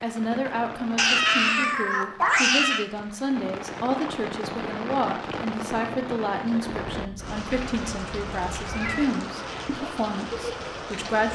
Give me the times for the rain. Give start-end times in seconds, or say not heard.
0.0-11.3.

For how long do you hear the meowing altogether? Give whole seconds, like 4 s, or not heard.
4 s.